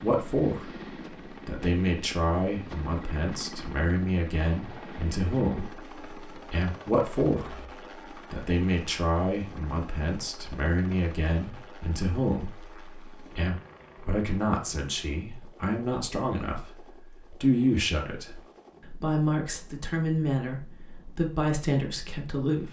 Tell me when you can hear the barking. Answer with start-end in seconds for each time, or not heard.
not heard.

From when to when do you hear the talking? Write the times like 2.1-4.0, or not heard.
0.0-0.8, 1.4-5.8, 6.5-7.6, 8.3-22.6.